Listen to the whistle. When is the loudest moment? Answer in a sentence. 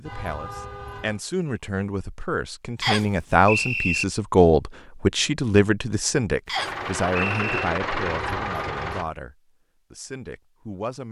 The volume of the whistle peaks at 4 seconds.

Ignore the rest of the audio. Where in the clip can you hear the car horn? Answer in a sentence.
The car horn can be heard from 0.1 to 1.2 s and from 8.1 to 9.1 s.